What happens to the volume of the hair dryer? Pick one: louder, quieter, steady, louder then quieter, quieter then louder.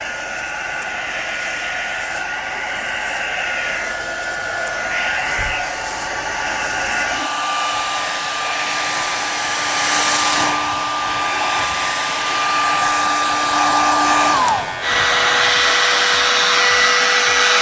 louder.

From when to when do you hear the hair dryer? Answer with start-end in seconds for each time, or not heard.
0.0-17.5.